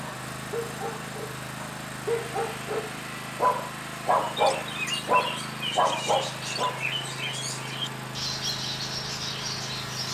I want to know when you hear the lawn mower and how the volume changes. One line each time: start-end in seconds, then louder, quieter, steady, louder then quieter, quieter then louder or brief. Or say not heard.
0.0-10.1 steady.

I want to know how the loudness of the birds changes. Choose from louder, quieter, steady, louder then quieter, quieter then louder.
steady.